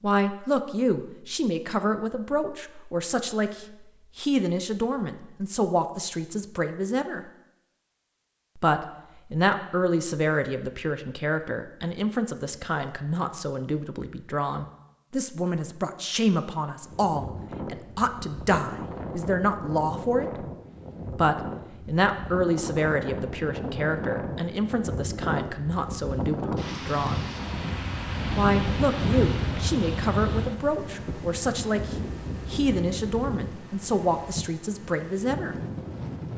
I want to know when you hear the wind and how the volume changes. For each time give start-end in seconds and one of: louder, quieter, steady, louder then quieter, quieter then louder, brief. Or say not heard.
16.8-36.3 louder then quieter.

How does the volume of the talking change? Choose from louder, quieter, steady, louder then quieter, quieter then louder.
steady.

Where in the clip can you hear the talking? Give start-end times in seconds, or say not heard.
0.0-7.2, 8.6-20.5, 21.1-27.2, 28.4-35.5.